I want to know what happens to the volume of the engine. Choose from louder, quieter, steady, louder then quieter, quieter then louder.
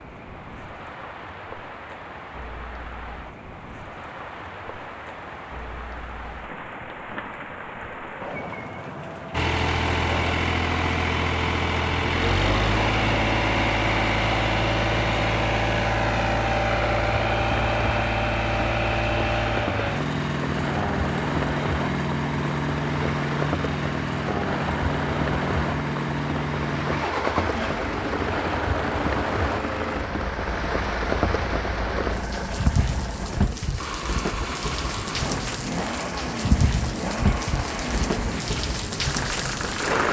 quieter.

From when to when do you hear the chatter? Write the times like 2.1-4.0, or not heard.
not heard.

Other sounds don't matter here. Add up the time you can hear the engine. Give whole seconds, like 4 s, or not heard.
31 s.